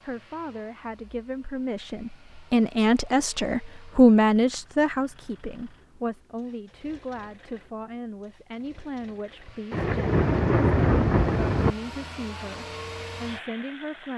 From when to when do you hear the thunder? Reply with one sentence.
The thunder can be heard from 9.7 to 11.8 s.